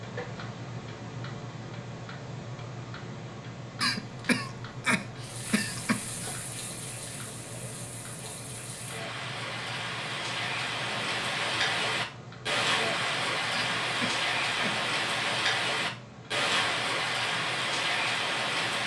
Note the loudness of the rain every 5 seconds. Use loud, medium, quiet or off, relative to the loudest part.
off, quiet, loud, loud.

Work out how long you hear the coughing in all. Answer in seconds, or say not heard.
4 s.